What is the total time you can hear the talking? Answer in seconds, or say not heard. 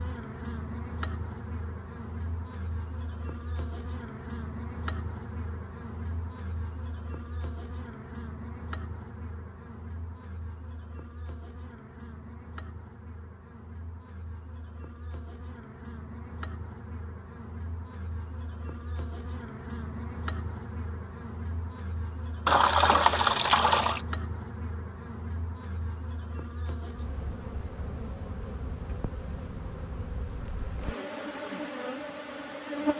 not heard.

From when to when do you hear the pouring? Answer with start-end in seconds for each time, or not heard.
22.4-24.0.